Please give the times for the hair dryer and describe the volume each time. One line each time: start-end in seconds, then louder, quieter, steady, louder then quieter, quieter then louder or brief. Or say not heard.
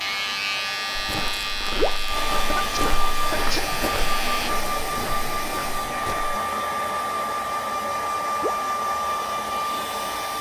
0.0-10.3 louder.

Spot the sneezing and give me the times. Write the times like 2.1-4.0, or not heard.
2.5-3.7.